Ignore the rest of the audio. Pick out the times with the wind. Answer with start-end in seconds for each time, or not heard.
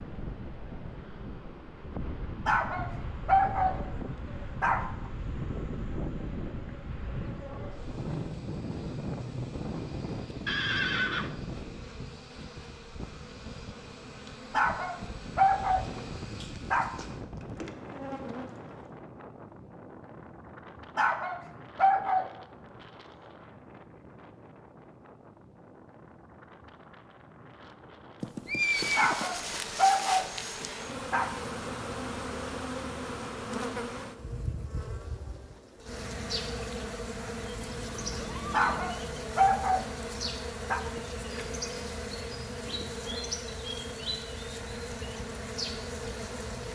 0.0-30.6.